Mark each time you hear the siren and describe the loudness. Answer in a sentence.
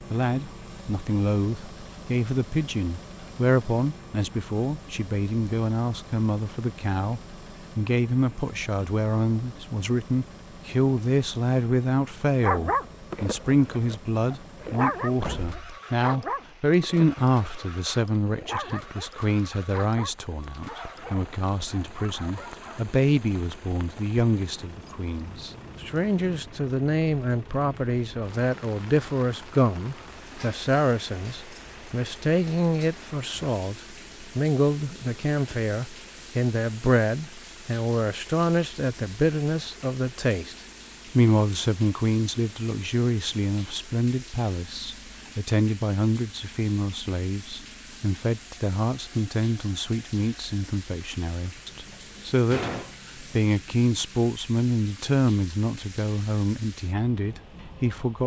You can't hear the siren here.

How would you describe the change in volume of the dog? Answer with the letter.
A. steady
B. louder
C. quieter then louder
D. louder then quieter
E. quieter
E.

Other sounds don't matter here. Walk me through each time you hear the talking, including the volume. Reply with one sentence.
You can hear the talking from 0.1 to 58.2 s, at a steady volume.